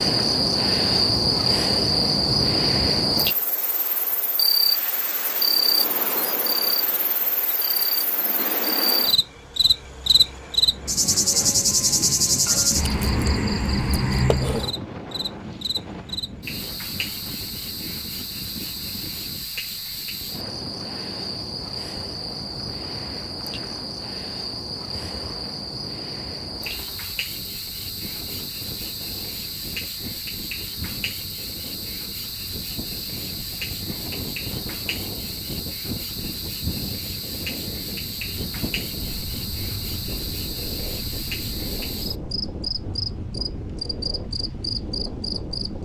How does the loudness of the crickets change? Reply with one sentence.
The loudness of the crickets goes down.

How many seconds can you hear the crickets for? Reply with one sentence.
The crickets can be heard for 46 seconds in total.